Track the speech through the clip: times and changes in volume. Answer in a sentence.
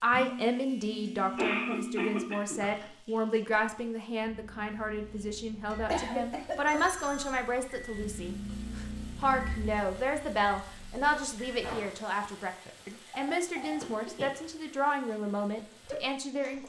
You can hear the speech from 0.0 to 16.6 s, at a steady volume.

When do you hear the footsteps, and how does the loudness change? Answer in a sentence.
The footsteps can't be heard in this clip.